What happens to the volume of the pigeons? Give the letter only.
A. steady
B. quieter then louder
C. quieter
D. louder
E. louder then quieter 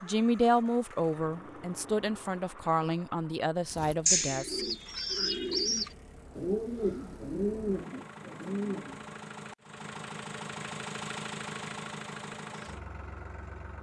C.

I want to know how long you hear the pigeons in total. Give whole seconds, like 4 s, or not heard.
5 s.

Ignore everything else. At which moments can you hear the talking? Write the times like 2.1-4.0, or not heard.
0.0-4.6.